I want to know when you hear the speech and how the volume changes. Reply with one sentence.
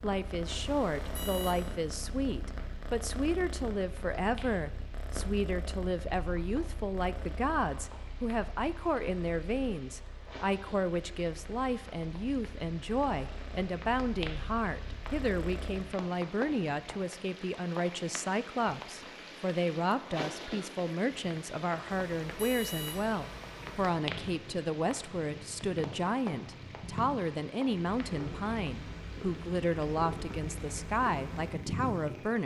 The speech can be heard from 0.0 to 32.4 s, at a steady volume.